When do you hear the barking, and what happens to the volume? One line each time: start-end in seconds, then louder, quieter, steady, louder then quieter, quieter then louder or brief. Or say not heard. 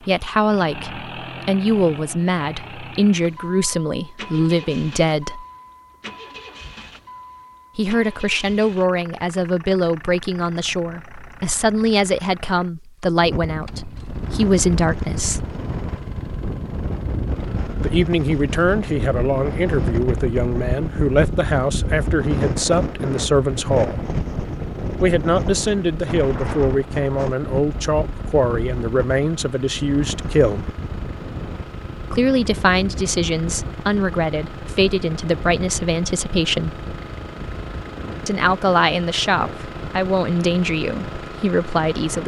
not heard.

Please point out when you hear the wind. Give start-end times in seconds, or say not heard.
13.2-42.2.